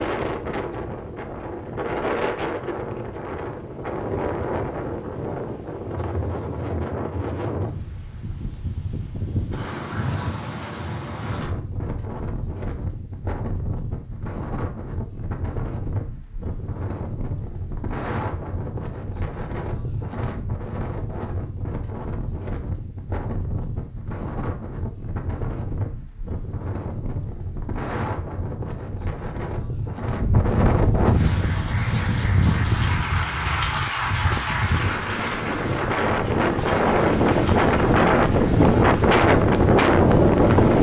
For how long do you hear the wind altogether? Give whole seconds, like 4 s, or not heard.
41 s.